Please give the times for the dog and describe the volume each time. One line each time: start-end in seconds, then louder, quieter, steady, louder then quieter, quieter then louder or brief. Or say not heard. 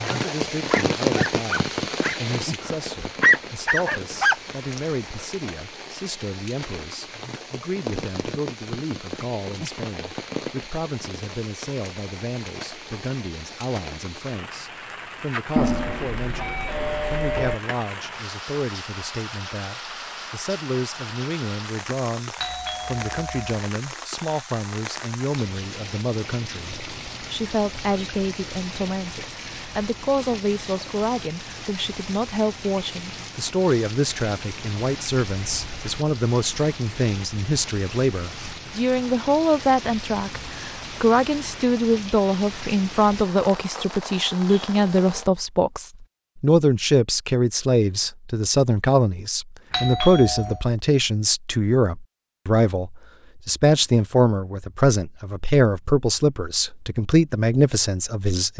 0.1-5.2 quieter then louder.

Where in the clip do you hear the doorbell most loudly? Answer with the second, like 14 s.
16 s.